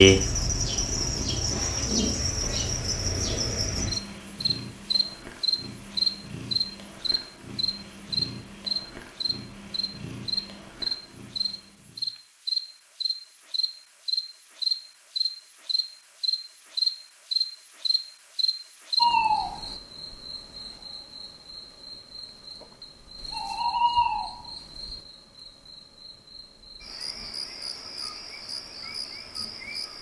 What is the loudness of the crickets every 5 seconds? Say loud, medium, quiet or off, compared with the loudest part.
loud, loud, loud, loud, medium, quiet.